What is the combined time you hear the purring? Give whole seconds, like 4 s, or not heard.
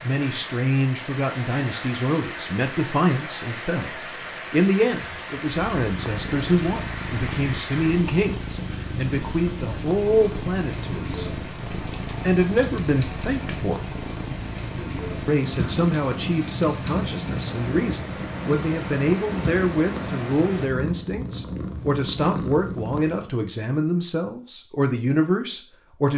18 s.